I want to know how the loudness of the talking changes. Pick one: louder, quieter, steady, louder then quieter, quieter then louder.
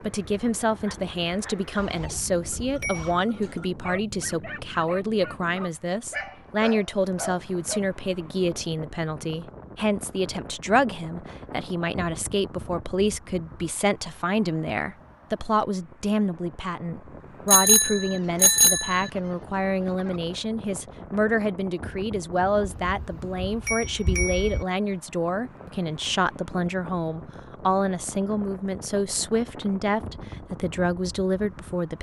steady.